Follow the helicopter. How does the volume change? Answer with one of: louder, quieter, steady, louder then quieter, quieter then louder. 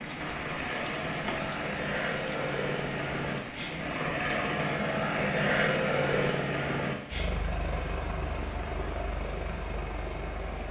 louder then quieter.